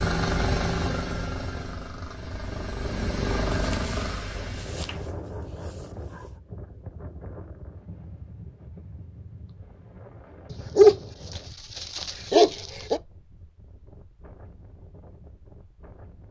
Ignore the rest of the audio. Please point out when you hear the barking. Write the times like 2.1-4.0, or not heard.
3.5-6.2, 10.5-13.0.